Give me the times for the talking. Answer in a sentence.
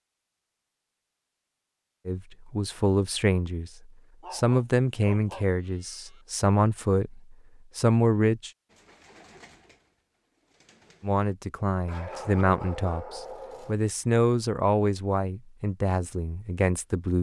The talking can be heard from 2.0 to 8.5 s and from 11.0 to 17.1 s.